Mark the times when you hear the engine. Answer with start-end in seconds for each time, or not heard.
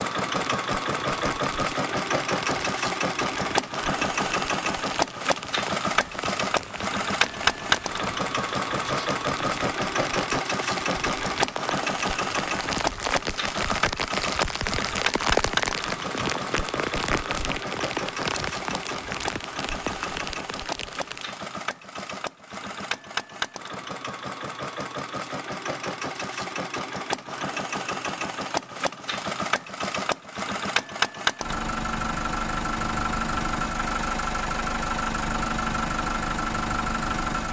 0.0-37.4.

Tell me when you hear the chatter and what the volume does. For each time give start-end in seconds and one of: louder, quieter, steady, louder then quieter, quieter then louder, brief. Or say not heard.
not heard.